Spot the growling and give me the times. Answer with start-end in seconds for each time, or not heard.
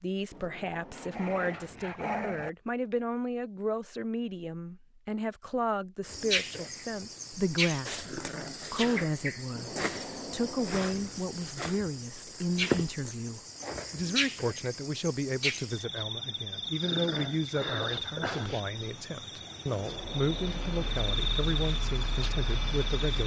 0.9-2.5, 8.0-9.1, 16.8-18.6.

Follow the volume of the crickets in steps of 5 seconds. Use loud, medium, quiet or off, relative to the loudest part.
off, loud, loud, loud, loud.